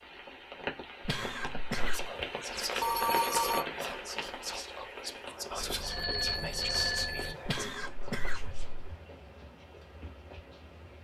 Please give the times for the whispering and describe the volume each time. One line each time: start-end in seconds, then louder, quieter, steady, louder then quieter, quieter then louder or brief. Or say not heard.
1.7-8.8 quieter.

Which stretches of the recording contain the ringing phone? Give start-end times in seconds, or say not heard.
2.8-3.6, 5.6-7.3.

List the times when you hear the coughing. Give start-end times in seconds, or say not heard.
1.1-2.1, 7.5-8.9.